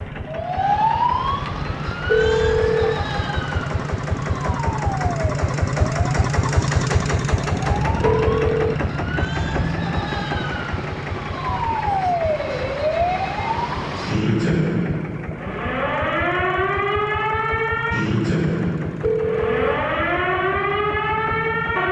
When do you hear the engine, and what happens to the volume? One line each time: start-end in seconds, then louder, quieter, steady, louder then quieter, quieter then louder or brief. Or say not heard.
0.0-21.8 louder then quieter.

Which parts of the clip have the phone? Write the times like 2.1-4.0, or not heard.
2.0-3.0, 8.0-8.8, 19.0-19.8.